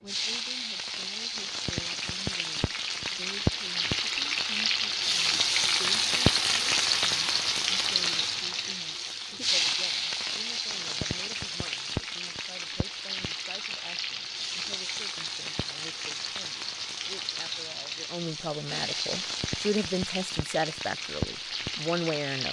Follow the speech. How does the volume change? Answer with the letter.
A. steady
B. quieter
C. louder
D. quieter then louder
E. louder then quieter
C.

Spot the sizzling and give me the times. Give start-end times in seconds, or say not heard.
0.1-22.4.